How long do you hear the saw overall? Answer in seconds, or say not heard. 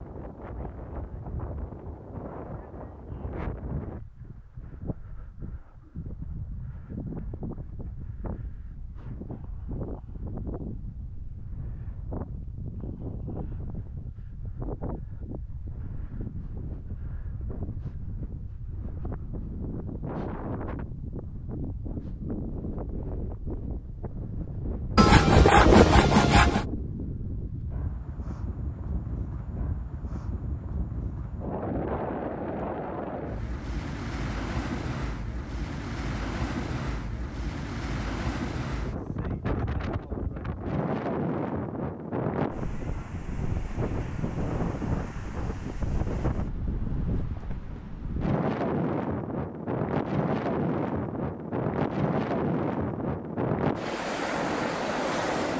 2 s.